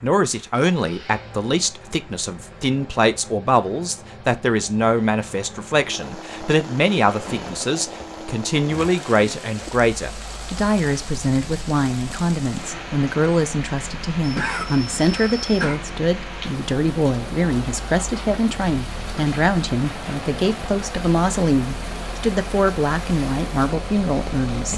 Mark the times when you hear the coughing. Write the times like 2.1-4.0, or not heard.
14.2-15.8.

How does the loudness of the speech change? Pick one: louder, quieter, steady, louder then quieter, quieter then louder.
steady.